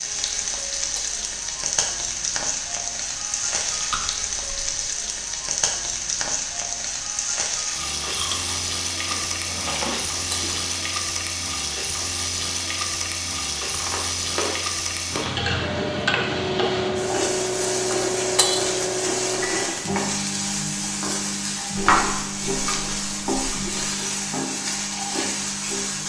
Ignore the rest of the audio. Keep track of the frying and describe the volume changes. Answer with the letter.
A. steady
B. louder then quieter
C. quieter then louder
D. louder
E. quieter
A.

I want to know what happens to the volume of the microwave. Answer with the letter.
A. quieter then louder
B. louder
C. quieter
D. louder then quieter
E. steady
C.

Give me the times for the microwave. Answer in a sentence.
The microwave can be heard from 15.6 to 26.0 s.